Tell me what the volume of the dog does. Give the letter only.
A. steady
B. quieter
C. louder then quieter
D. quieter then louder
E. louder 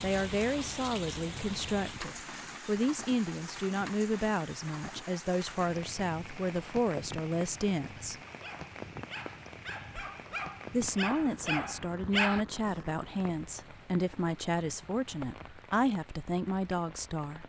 E.